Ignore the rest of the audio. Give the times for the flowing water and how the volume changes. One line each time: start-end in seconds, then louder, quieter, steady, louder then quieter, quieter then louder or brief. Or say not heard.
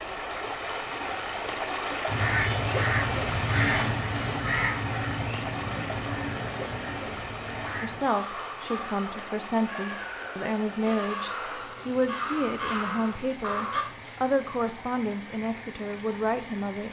0.0-16.8 quieter.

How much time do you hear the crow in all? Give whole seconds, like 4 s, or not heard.
12 s.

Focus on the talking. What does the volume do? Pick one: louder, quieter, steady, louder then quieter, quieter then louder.
steady.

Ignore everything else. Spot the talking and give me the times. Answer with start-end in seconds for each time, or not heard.
7.8-16.8.